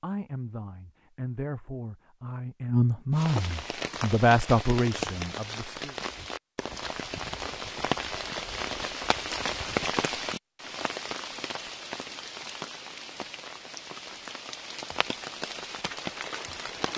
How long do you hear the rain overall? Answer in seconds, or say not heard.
14 s.